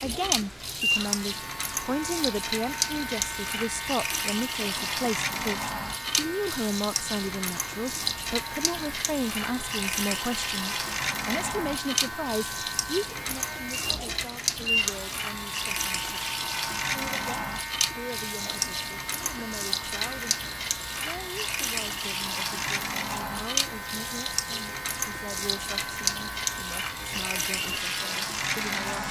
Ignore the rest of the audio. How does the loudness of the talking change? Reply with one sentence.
The loudness of the talking goes down.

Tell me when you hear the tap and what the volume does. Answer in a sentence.
The tap can be heard from 0.0 to 29.0 s, at a steady volume.